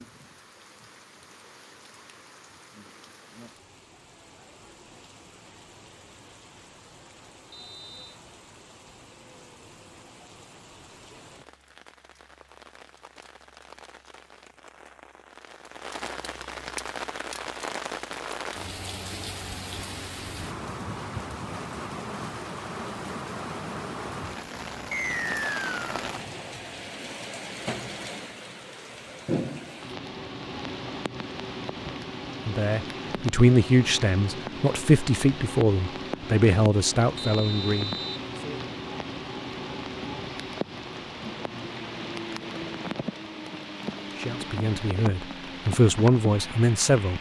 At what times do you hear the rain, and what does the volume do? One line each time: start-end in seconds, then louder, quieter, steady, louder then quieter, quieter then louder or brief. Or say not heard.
0.0-47.1 louder.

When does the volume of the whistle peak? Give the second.
25 s.